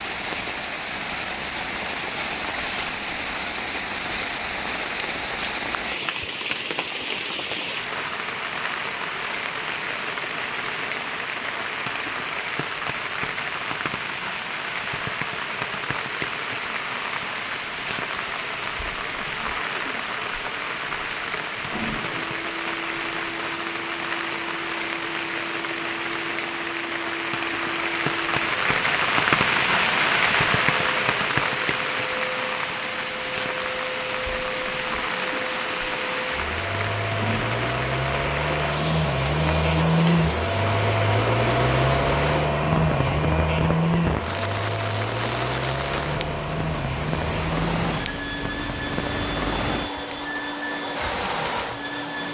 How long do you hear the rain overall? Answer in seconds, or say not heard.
52 s.